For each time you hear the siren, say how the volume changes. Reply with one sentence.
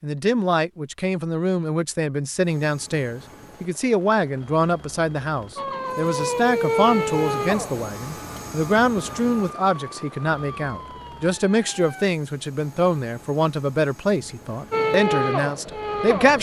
You can hear the siren from 5.5 to 12.1 s, getting quieter; and briefly from 14.7 to 16.3 s.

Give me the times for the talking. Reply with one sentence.
The talking can be heard from 0.0 to 16.3 s.